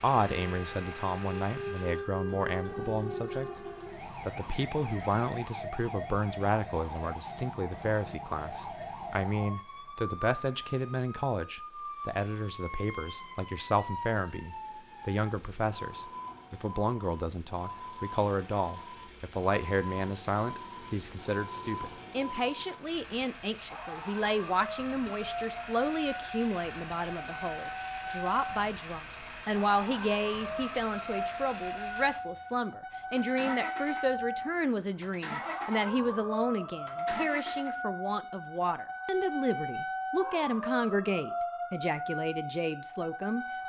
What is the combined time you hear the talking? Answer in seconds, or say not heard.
43 s.